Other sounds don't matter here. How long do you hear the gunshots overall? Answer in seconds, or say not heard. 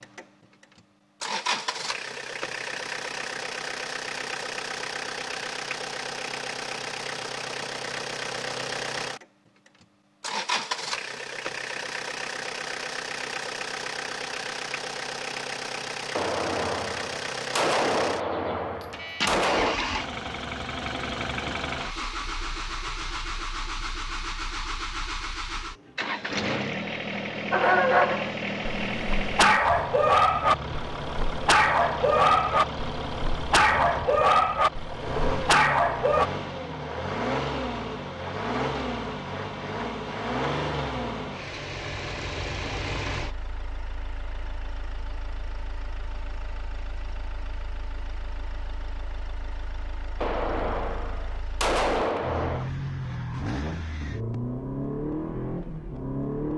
6 s.